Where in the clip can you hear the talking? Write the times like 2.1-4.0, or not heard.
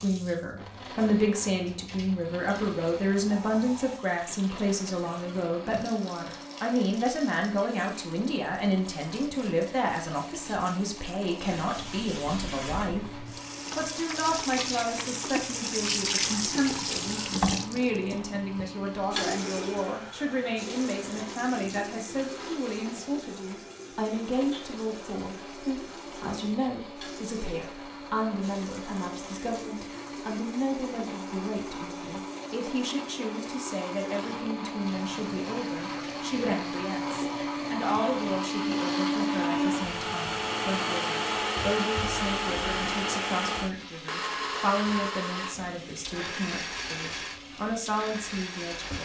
0.0-48.9.